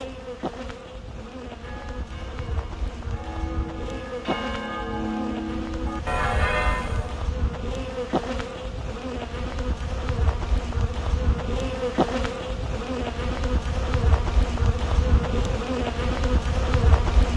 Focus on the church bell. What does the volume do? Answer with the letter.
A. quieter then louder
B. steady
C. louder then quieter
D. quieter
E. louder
E.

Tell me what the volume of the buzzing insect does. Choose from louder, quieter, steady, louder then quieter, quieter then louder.
louder.